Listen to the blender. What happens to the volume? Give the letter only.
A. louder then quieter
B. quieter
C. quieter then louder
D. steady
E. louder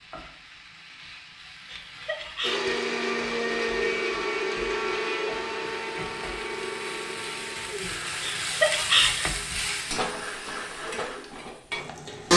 B.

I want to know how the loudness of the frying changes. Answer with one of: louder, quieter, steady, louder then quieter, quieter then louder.
louder.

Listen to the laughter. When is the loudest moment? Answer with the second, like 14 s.
9 s.